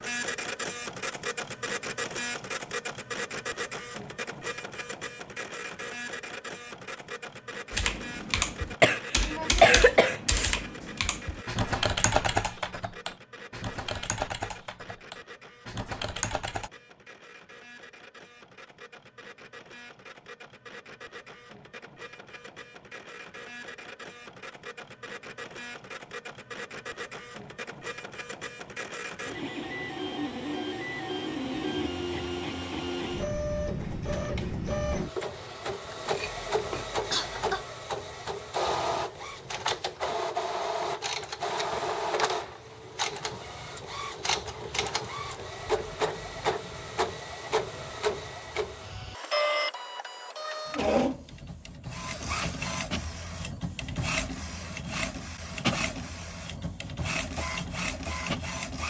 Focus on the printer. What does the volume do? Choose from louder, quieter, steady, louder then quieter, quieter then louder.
quieter then louder.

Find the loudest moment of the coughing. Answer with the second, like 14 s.
10 s.